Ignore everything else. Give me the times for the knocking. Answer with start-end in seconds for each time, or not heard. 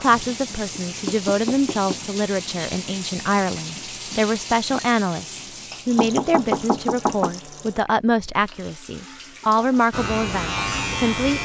0.1-2.1, 6.0-7.3.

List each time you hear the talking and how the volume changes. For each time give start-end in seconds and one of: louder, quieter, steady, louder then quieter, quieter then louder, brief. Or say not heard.
0.0-11.4 steady.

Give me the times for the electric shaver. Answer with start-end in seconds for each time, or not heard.
9.9-11.4.